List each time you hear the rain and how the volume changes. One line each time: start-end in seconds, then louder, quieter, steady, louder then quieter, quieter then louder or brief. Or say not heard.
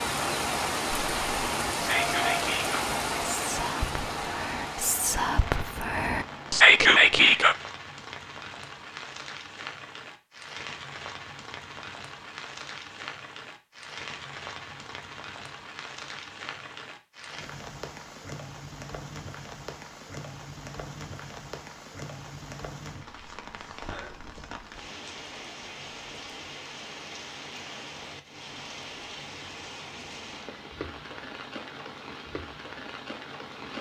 0.0-33.7 quieter.